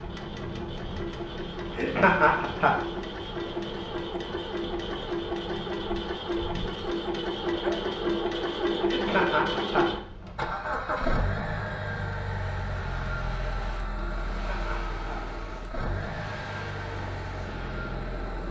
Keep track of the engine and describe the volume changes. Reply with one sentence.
The loudness of the engine goes up, then down.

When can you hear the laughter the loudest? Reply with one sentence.
The volume of the laughter peaks at 2 seconds.